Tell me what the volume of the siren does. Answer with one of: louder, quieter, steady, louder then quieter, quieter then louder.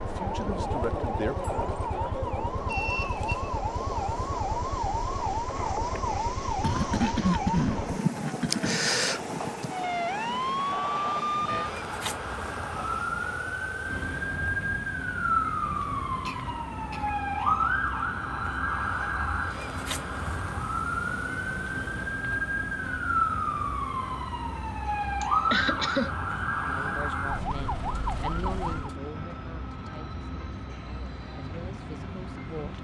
steady.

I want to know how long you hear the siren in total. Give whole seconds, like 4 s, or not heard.
29 s.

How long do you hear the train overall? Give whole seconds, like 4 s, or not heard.
33 s.